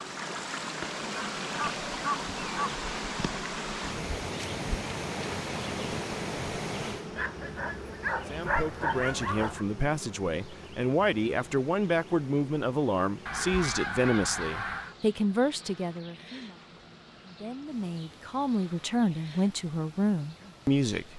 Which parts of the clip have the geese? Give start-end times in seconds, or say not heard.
1.1-2.8, 13.2-14.9.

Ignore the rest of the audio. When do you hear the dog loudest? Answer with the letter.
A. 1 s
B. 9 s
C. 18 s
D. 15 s
B.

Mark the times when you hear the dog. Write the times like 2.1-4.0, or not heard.
7.2-9.7.